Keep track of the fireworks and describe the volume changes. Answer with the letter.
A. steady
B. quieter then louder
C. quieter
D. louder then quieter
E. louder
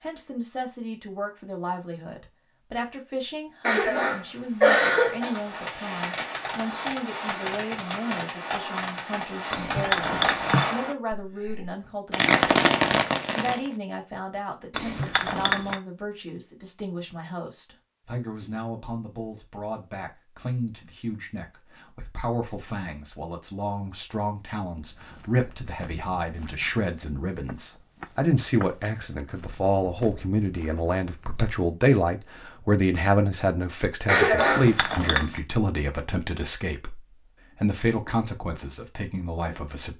E.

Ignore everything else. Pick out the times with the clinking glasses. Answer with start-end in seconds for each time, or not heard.
9.5-10.8, 14.7-15.8, 34.4-35.4.